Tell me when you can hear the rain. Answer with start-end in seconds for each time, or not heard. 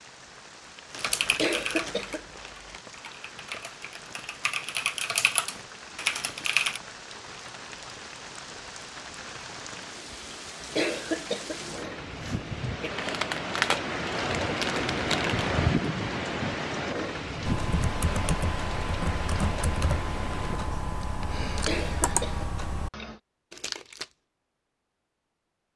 0.0-20.6.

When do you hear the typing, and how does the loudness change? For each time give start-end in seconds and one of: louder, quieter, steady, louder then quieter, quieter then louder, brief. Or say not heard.
0.9-6.8 quieter then louder
17.4-23.1 steady.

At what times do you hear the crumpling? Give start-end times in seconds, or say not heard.
0.9-2.8, 12.9-15.4, 23.5-24.1.